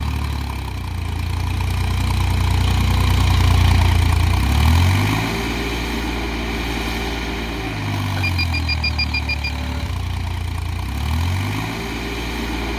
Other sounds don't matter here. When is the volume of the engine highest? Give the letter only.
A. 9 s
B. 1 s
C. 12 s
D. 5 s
D.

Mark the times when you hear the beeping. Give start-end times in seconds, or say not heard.
8.2-9.5.